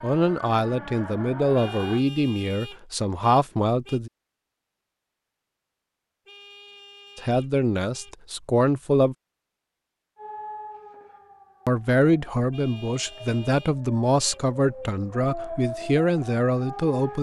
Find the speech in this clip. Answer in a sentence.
You can hear the speech from 0.0 to 4.1 s, from 7.2 to 9.2 s and from 11.7 to 17.1 s.